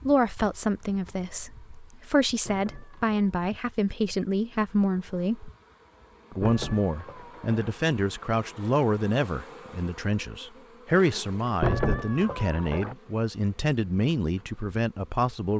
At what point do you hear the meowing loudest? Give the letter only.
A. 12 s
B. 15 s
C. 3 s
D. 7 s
A.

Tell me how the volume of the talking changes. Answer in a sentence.
The volume of the talking stays about the same.